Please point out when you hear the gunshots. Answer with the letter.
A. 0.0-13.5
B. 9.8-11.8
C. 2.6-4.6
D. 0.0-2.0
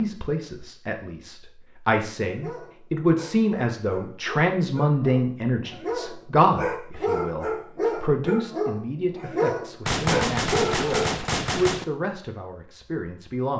B.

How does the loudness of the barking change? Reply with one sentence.
The loudness of the barking goes up.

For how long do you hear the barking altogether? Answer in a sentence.
You can hear the barking for 9 seconds altogether.